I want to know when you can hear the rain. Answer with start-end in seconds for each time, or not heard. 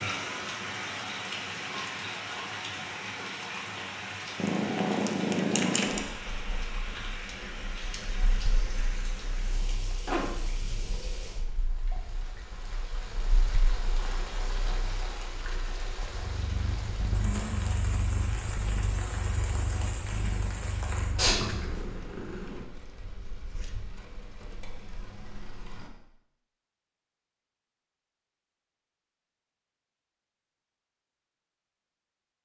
0.0-25.9.